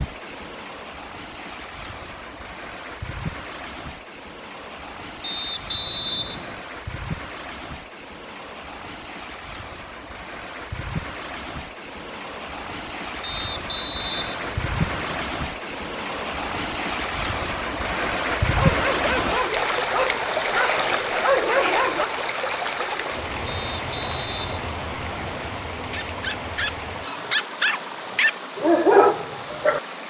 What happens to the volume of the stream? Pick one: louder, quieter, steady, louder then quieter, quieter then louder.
louder then quieter.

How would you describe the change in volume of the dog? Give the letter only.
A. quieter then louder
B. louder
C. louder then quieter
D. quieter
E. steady
B.